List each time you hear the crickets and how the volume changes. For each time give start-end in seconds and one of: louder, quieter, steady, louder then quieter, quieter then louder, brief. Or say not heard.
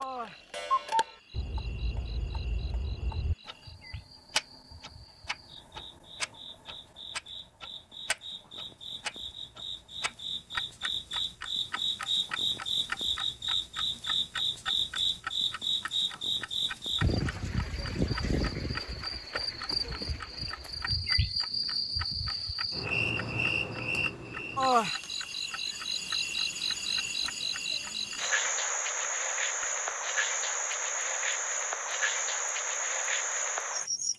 0.0-34.1 louder.